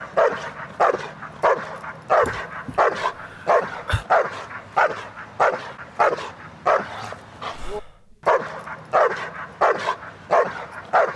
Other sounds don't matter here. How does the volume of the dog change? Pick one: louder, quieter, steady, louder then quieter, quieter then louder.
steady.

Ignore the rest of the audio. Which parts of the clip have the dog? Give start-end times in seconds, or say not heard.
0.0-11.1.